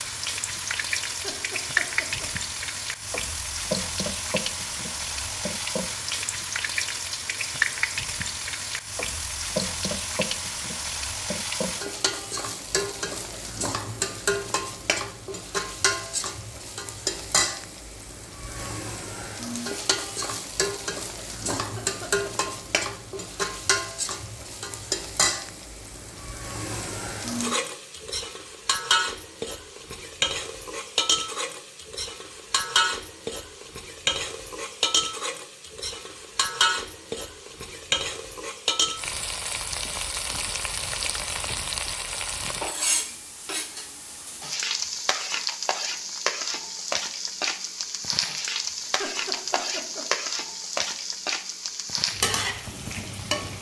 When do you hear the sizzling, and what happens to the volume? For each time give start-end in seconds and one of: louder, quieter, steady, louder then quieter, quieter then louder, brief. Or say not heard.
0.0-53.5 steady.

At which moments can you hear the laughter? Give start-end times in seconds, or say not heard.
1.1-2.3, 21.6-22.5, 48.9-50.0.